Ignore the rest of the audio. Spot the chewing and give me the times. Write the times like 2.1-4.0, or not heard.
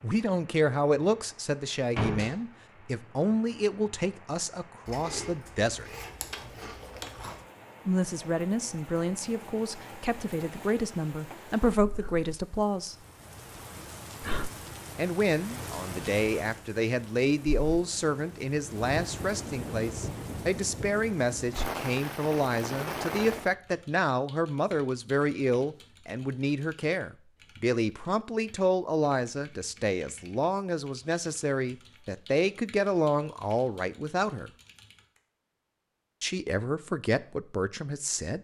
4.8-7.5.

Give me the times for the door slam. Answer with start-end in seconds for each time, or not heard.
1.9-2.4.